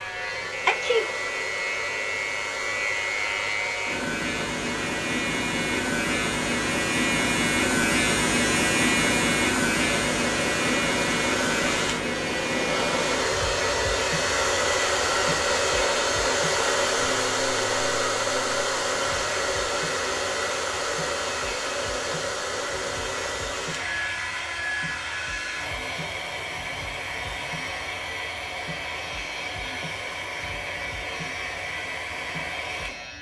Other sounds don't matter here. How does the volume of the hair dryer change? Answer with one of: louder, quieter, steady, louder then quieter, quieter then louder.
louder then quieter.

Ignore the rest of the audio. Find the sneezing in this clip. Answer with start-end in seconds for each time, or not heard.
0.7-1.1.